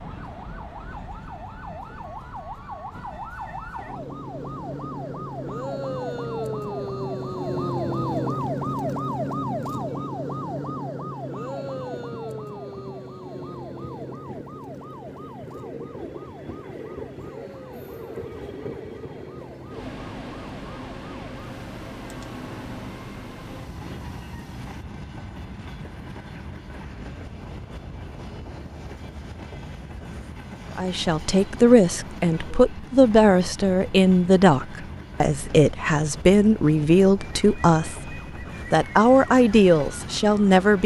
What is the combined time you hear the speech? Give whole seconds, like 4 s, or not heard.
10 s.